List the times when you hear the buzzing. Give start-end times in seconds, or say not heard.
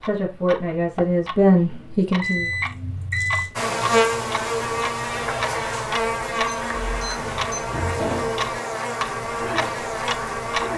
3.5-10.7.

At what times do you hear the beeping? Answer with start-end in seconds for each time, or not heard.
2.2-3.5, 6.5-7.7.